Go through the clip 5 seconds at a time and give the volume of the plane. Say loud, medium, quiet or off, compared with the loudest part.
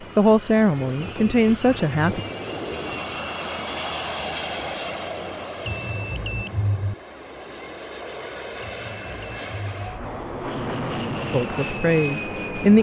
loud, medium, loud.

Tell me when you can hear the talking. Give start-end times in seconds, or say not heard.
0.1-2.2, 11.3-12.7.